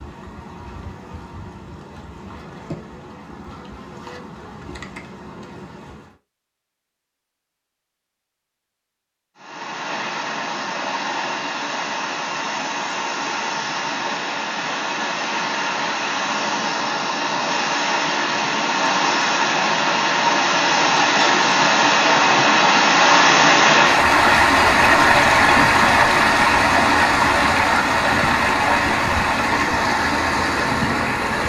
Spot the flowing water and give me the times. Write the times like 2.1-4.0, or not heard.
9.3-31.4.